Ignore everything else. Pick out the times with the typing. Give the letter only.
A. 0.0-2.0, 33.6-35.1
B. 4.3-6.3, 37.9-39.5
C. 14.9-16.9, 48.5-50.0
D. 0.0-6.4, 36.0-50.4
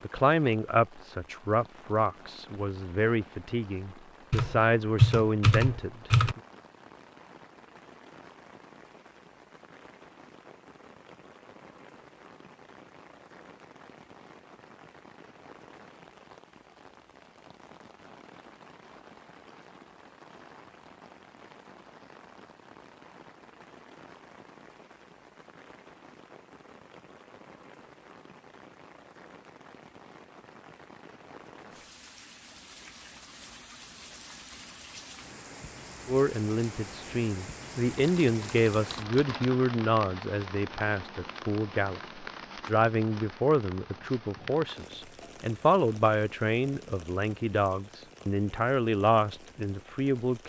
B.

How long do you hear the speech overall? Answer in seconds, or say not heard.
21 s.